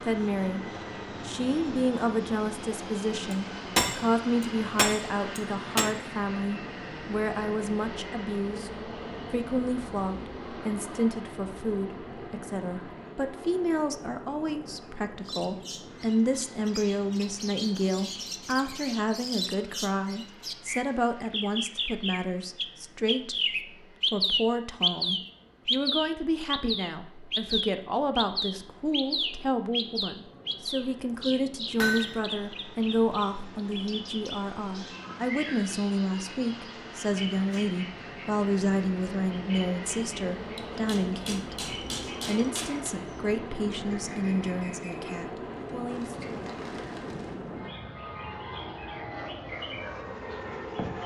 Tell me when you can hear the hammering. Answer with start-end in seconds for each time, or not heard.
3.3-5.9, 31.8-32.2, 40.5-43.0.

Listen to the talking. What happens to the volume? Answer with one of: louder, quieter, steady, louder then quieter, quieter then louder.
steady.